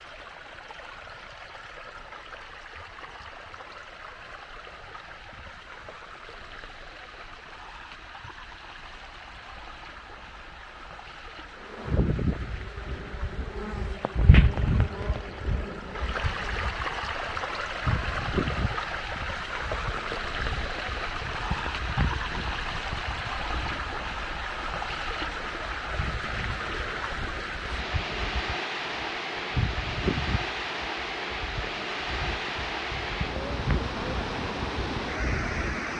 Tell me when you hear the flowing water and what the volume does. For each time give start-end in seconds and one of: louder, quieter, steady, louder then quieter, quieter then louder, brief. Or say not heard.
0.0-35.9 louder.